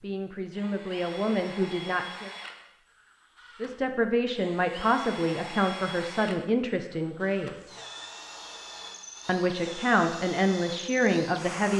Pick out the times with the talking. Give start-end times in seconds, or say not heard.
0.0-2.3, 3.6-7.7, 9.2-11.7.